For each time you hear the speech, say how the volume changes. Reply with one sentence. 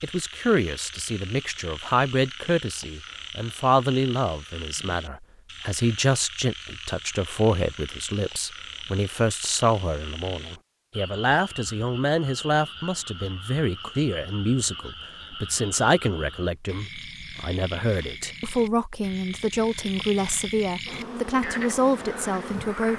The speech can be heard from 0.0 to 22.9 s, at a steady volume.